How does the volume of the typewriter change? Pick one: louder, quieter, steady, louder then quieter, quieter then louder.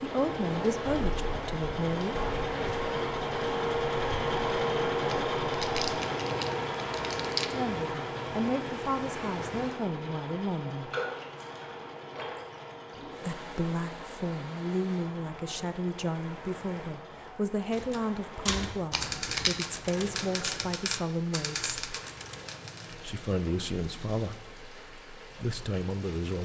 quieter.